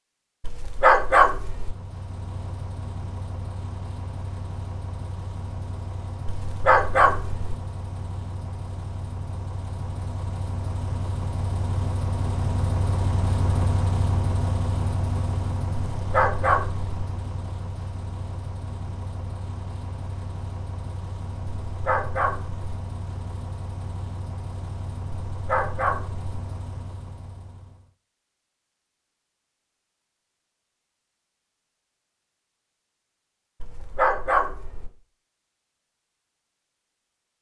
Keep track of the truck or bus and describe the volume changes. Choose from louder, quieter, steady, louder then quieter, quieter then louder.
louder then quieter.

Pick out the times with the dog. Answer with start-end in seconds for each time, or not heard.
0.4-1.8, 6.2-7.5, 15.9-16.9, 21.6-22.6, 25.3-26.2, 33.6-34.9.